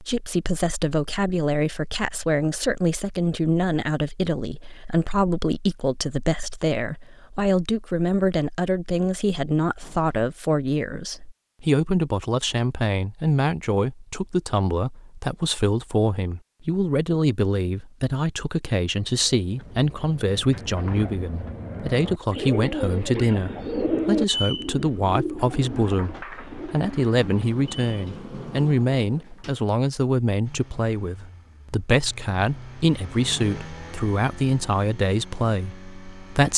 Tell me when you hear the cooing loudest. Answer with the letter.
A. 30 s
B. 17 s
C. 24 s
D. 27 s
C.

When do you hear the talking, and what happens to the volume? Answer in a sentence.
The talking can be heard from 0.0 to 36.5 s, at a steady volume.